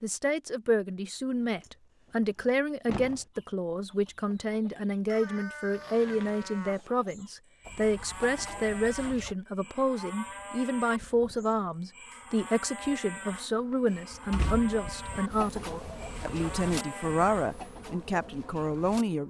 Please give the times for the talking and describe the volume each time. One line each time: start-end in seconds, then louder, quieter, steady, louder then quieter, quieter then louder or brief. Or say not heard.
0.0-19.2 steady.